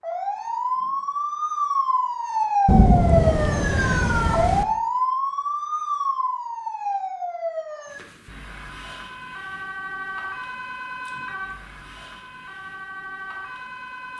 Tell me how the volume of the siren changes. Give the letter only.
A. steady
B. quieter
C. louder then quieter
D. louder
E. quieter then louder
B.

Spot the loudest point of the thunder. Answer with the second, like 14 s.
3 s.